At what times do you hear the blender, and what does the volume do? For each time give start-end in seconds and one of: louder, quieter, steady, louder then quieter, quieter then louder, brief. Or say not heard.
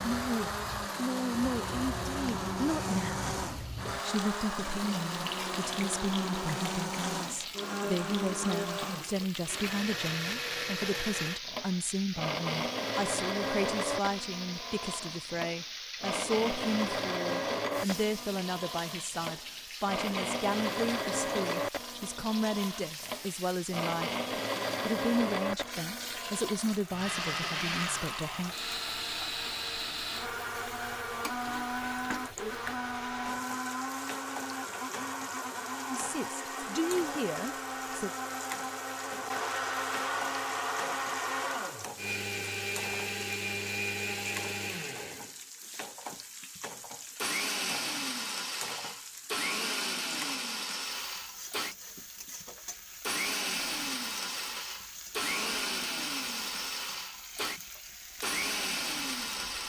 0.0-59.6 steady.